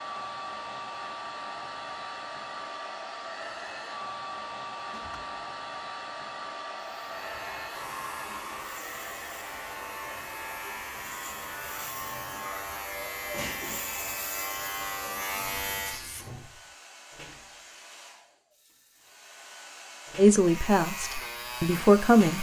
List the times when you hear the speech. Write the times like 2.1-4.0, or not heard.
20.1-22.3.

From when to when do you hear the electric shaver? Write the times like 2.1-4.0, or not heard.
7.0-16.2, 20.3-22.3.